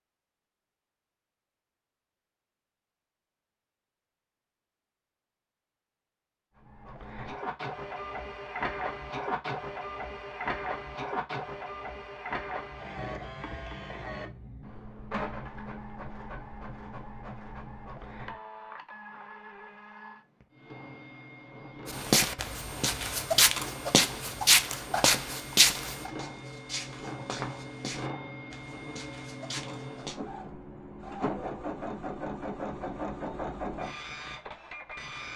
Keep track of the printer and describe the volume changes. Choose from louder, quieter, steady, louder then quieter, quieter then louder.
quieter then louder.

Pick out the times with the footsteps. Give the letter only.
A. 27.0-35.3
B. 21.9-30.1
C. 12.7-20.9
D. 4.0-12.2
B.